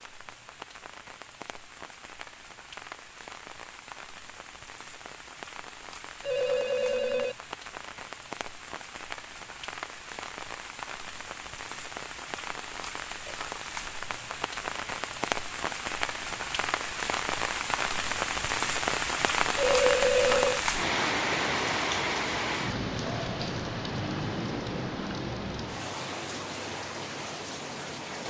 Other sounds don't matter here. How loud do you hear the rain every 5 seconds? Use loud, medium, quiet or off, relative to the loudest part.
quiet, quiet, medium, loud, loud, medium.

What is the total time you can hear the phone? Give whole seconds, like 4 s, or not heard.
2 s.